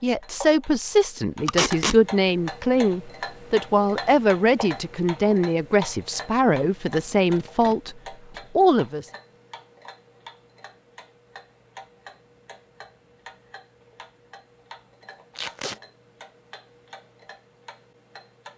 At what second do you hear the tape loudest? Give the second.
2 s.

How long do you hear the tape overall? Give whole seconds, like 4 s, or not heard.
2 s.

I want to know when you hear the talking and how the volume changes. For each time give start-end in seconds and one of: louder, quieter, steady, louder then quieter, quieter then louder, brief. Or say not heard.
0.0-8.0 steady
8.6-9.1 brief.